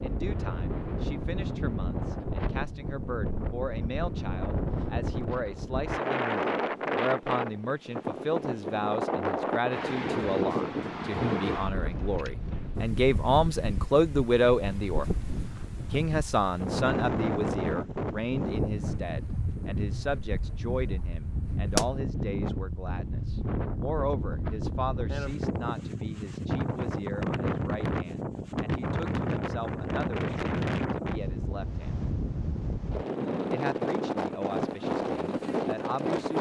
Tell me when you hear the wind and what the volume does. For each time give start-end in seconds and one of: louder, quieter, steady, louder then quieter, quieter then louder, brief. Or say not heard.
0.0-36.3 steady.